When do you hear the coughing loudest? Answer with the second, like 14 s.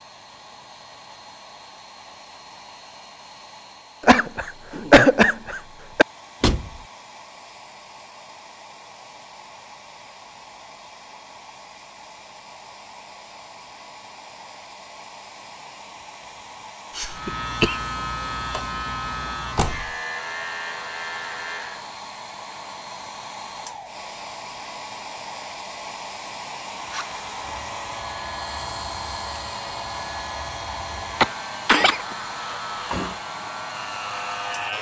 5 s.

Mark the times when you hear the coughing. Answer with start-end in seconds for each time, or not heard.
4.0-6.0, 16.9-17.8, 31.2-32.0.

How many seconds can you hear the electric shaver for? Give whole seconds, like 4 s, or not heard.
13 s.